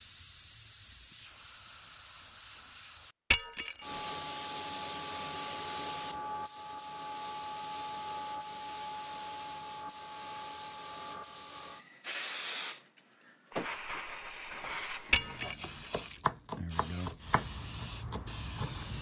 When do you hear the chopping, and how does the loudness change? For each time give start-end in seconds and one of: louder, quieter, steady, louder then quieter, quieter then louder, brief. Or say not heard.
14.6-18.9 louder then quieter.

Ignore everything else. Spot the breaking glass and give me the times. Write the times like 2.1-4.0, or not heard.
3.3-3.8, 15.1-15.6.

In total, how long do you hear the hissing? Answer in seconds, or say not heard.
19 s.